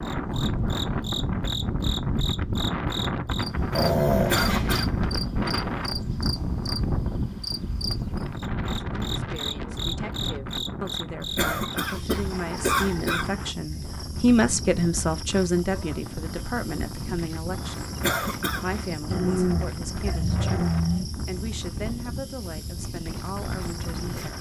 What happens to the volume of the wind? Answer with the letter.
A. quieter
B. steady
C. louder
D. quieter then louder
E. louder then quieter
A.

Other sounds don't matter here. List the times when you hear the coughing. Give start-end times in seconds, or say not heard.
4.2-4.8, 11.3-13.2, 18.0-18.6.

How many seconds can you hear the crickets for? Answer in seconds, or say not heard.
24 s.